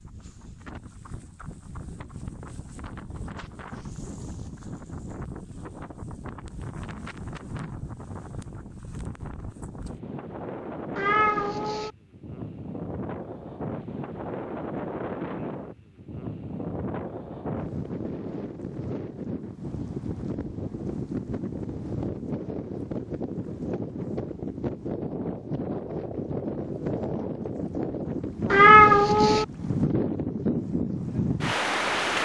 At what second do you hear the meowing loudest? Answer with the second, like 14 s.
29 s.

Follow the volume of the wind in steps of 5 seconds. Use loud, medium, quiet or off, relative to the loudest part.
quiet, quiet, medium, medium, medium, loud, loud.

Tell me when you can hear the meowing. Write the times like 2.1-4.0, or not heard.
10.9-11.9, 28.5-29.4.